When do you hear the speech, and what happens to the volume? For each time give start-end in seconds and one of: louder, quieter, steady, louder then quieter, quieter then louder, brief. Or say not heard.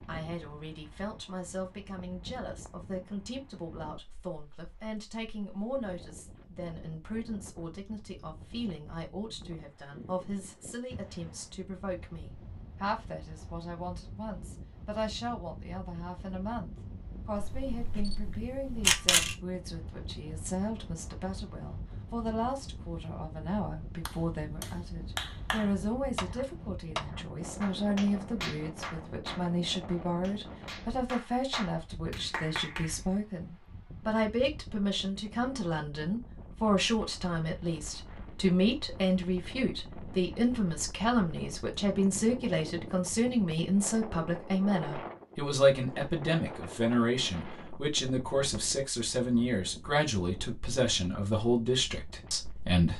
0.1-52.9 louder.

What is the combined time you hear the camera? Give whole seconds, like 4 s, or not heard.
2 s.